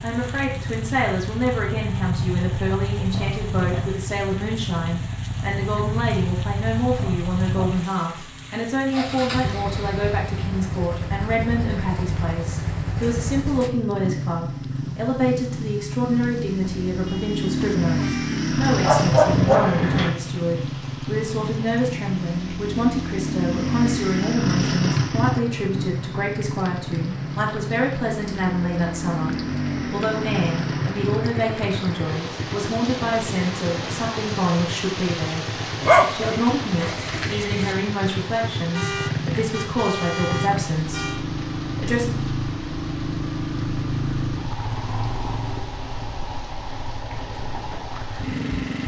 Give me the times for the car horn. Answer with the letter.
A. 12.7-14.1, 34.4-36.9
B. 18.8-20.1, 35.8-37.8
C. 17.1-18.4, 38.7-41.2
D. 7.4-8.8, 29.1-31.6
C.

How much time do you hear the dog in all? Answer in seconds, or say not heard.
3 s.